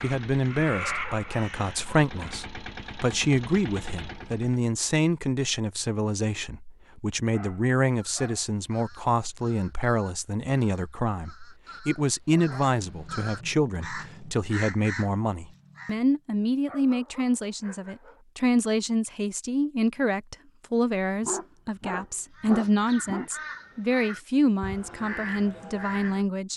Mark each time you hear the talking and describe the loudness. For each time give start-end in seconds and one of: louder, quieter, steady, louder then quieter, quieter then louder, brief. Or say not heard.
0.0-26.5 steady.